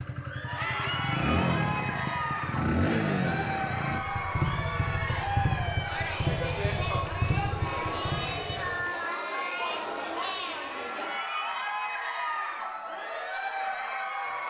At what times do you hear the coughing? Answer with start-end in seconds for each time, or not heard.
not heard.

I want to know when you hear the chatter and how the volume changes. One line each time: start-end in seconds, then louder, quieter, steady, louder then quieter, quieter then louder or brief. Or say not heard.
0.1-14.4 steady.